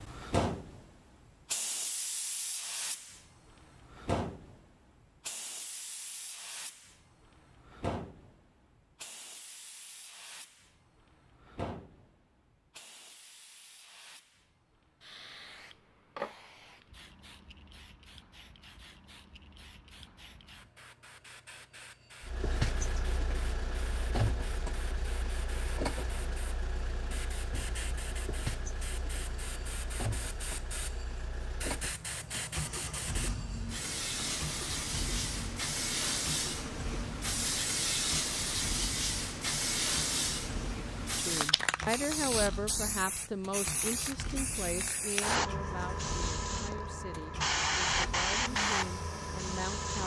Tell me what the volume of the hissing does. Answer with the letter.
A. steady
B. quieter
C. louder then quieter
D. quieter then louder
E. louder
D.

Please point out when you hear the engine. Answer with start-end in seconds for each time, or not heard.
22.2-50.0.